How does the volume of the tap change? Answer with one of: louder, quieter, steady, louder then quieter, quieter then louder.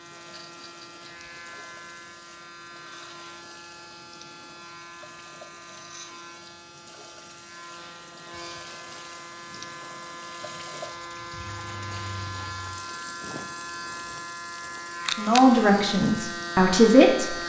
louder.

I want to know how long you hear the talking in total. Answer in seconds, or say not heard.
2 s.